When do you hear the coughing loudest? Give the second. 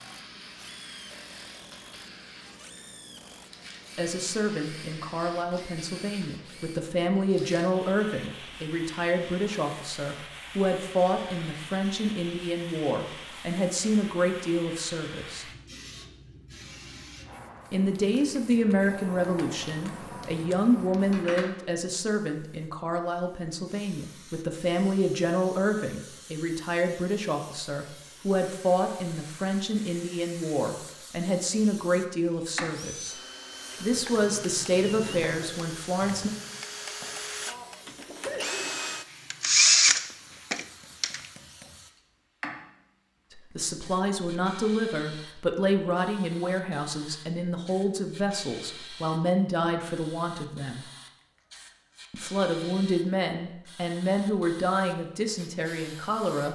38 s.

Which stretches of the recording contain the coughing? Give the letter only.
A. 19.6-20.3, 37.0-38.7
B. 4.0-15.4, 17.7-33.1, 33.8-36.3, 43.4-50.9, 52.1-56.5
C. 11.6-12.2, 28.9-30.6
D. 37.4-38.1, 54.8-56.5
A.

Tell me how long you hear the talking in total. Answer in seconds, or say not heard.
41 s.